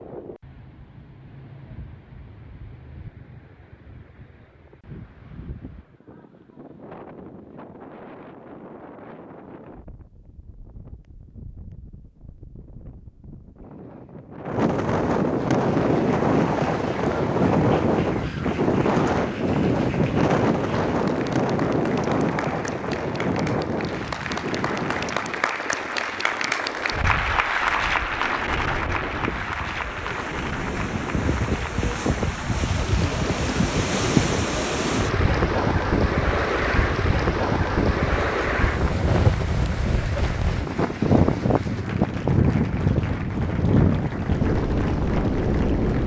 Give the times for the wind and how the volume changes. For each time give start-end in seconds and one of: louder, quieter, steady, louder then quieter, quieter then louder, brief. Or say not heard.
0.0-46.0 louder.